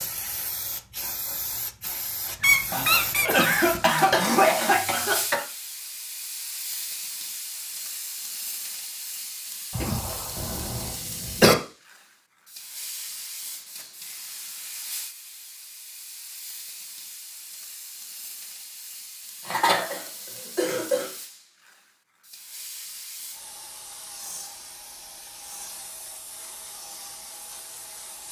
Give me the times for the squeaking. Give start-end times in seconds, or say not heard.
2.4-3.8.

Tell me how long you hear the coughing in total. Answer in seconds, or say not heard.
6 s.